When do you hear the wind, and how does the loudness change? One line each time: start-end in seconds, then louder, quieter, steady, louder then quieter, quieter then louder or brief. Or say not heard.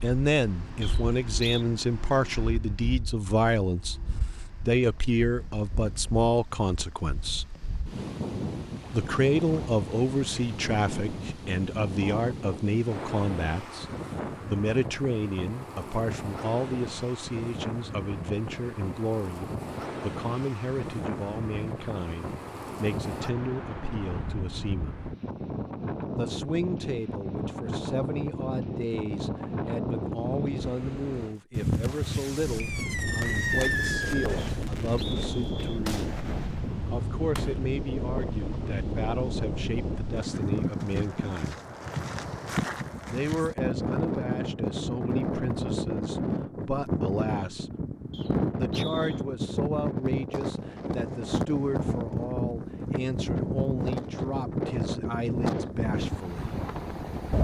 0.0-57.3 louder.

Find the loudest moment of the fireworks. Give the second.
34 s.